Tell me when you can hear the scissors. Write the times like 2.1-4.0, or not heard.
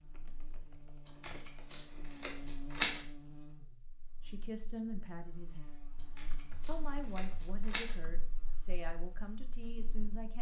1.1-3.0, 6.0-8.0.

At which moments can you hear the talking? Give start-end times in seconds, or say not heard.
4.2-5.7, 6.7-10.3.